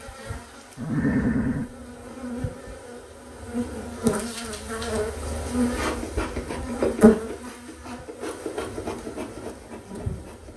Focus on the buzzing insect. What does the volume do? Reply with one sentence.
The loudness of the buzzing insect goes up, then down.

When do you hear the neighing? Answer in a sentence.
The neighing can be heard from 0.8 to 1.8 s.